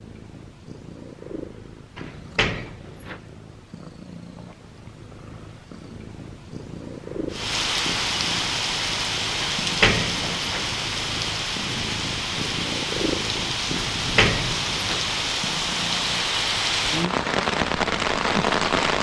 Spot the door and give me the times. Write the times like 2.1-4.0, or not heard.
1.9-3.2, 9.4-10.7, 13.9-15.1.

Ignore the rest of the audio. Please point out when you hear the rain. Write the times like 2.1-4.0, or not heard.
7.3-18.9.